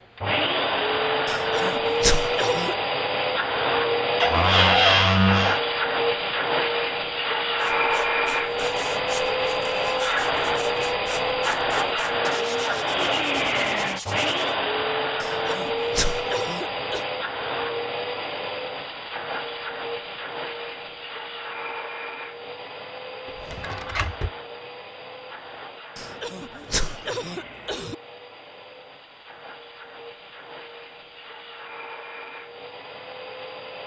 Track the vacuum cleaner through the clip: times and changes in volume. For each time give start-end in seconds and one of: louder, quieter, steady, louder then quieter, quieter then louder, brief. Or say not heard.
0.1-33.8 quieter.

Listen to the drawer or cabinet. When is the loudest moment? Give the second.
5 s.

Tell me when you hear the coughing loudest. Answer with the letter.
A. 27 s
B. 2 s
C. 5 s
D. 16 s
B.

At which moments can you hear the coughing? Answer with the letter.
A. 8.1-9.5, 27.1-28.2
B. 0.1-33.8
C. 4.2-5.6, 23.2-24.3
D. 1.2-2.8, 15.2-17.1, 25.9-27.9
D.